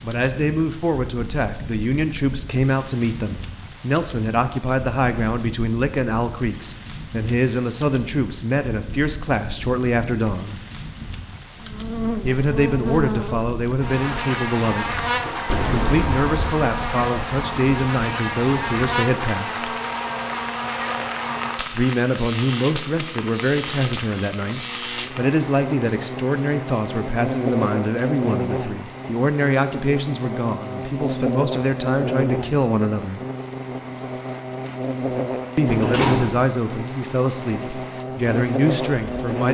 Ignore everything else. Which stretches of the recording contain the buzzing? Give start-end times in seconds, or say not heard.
11.6-39.4.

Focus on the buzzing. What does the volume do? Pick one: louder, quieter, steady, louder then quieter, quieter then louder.
steady.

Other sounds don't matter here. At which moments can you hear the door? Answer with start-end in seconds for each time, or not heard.
15.4-16.4, 35.6-36.5.